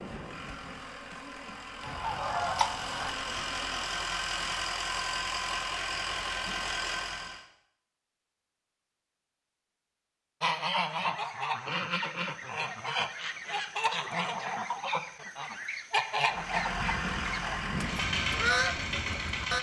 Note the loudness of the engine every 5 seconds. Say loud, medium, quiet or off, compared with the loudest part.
loud, loud, off, loud.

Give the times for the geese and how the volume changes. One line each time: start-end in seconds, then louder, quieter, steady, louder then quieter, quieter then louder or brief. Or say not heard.
1.6-3.1 brief
10.4-19.5 steady.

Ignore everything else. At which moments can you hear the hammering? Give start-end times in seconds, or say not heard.
not heard.